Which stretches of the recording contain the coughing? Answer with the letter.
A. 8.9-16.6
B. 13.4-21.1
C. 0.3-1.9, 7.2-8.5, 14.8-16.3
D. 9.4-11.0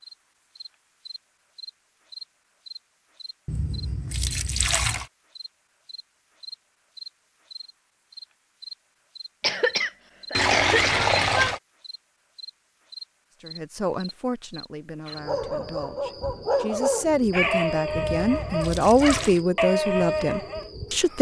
D.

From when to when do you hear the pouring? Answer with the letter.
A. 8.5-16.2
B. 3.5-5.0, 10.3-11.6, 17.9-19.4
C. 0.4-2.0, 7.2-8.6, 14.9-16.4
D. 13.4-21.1
B.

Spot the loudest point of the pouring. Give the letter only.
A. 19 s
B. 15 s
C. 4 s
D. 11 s
D.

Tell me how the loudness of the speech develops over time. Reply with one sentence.
The loudness of the speech goes down, then up.